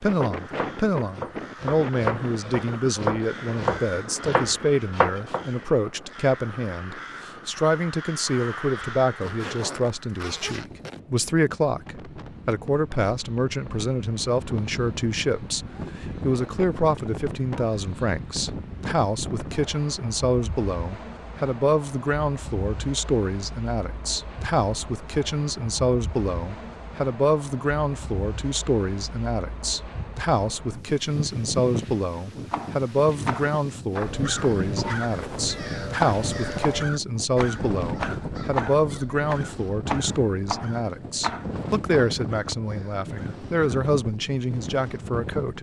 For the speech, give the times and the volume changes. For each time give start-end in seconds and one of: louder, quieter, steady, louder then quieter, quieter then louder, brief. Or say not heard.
0.0-45.5 steady.